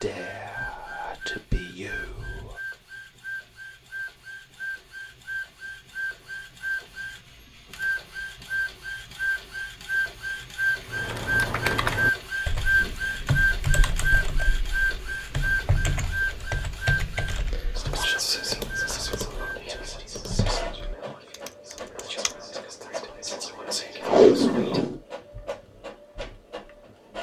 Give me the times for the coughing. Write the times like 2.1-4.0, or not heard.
not heard.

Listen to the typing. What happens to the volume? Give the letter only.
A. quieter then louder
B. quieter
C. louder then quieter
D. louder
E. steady
B.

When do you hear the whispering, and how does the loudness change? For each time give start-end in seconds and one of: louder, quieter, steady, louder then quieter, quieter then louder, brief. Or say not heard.
0.0-2.6 brief
17.8-24.8 quieter then louder.